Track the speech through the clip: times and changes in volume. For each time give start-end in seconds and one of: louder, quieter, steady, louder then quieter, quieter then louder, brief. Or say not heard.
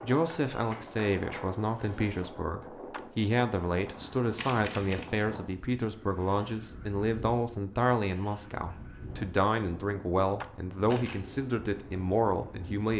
0.0-12.9 steady.